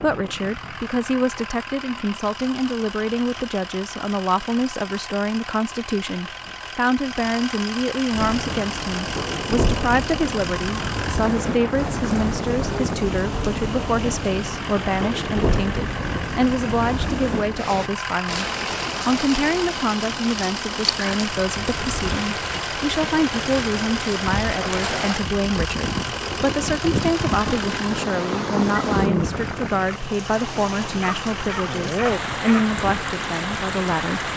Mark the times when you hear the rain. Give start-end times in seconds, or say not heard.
8.1-34.3.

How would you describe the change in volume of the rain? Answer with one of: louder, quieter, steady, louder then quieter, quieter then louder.
steady.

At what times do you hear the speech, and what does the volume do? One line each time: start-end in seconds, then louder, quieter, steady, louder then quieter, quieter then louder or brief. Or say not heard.
0.0-34.3 steady.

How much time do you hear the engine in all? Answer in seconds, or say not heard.
34 s.